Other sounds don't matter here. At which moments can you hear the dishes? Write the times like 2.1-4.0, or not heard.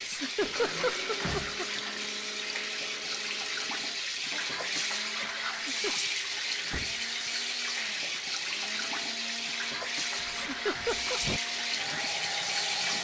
not heard.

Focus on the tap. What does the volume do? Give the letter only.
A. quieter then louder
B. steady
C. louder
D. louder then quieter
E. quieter
B.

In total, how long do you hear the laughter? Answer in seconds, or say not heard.
3 s.